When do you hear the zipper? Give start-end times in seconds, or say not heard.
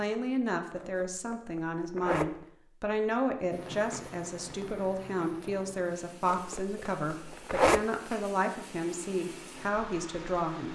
0.8-2.5, 6.2-7.8.